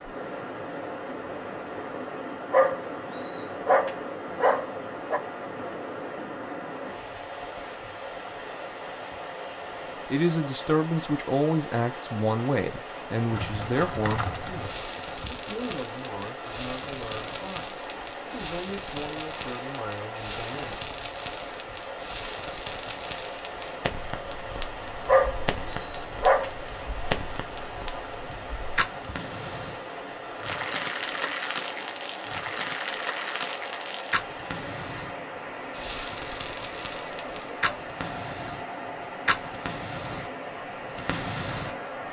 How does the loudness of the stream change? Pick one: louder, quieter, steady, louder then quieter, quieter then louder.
steady.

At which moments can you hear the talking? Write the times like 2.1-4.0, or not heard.
10.1-20.9.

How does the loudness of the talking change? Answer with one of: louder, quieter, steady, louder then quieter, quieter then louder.
quieter.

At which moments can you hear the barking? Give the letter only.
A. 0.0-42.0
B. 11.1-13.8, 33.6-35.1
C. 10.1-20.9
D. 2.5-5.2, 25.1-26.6
D.